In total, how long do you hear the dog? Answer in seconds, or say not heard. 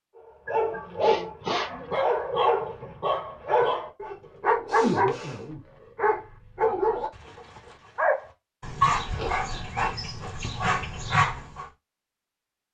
11 s.